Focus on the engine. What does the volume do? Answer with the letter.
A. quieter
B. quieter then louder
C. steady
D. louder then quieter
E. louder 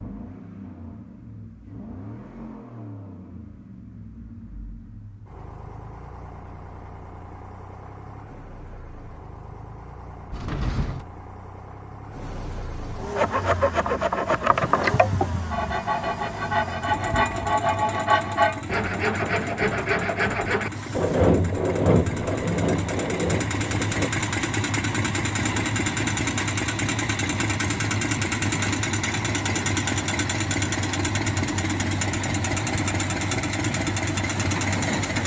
E.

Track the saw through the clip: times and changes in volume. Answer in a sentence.
The saw can be heard from 13.2 to 24.1 s, at a steady volume.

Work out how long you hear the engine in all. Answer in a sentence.
The engine can be heard for 35 seconds in total.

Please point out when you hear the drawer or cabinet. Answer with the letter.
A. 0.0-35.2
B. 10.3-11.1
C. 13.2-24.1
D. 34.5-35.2
B.